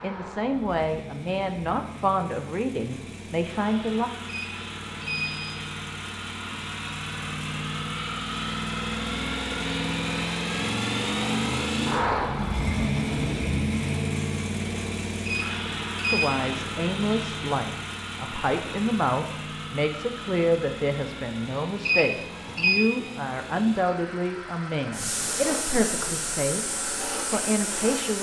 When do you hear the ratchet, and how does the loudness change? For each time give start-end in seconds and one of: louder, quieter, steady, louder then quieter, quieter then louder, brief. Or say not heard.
not heard.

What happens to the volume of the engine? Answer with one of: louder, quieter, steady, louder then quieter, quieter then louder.
louder then quieter.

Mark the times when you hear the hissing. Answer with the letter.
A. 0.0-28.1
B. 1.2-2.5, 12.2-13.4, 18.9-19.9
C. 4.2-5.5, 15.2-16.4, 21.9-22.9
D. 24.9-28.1
D.